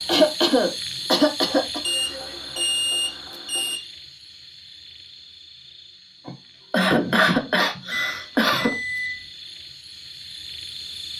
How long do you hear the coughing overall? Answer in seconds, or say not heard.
4 s.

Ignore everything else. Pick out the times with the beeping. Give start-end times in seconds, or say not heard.
1.8-3.8, 7.9-9.3.